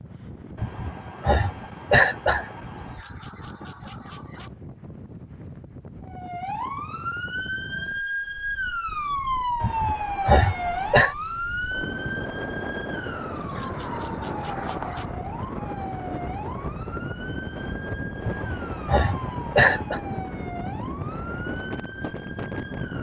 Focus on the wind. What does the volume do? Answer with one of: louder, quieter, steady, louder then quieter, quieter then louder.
louder.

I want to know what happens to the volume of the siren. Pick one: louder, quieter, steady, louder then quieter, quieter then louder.
quieter.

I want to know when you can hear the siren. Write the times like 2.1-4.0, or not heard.
6.0-22.9.